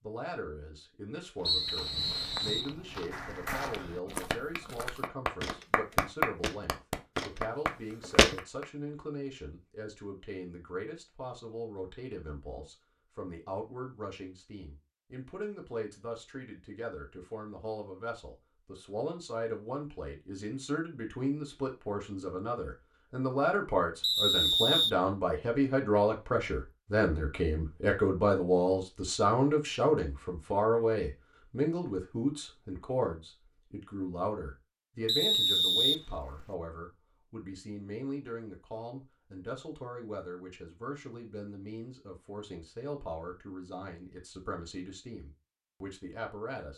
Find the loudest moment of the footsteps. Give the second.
8 s.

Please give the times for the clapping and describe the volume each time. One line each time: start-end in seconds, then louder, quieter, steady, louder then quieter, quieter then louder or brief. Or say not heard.
3.1-8.8 louder then quieter.